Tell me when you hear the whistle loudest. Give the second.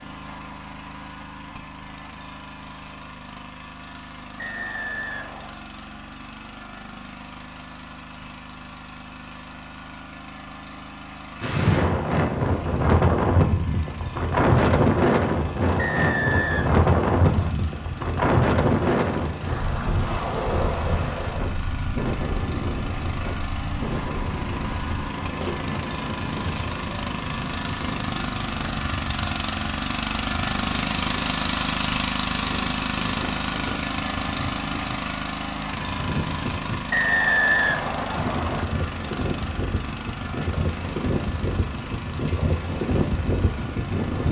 37 s.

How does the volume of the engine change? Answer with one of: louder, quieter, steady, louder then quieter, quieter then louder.
louder then quieter.